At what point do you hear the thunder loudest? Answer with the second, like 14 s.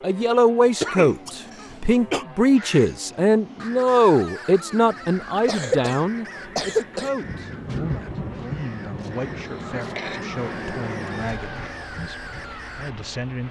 8 s.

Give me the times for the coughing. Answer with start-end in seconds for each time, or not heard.
0.8-2.2, 5.2-7.1, 9.3-10.2.